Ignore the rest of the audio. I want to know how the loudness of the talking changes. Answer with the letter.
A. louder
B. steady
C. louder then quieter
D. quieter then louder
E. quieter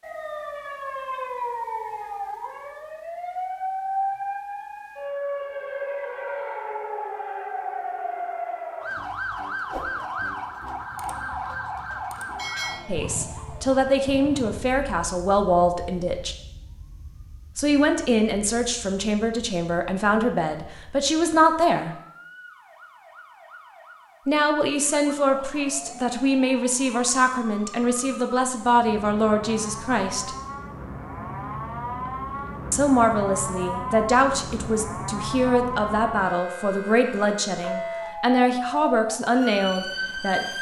B.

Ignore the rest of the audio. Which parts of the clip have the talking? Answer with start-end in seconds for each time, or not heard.
12.8-16.4, 17.6-21.9, 24.2-30.3, 32.7-40.5.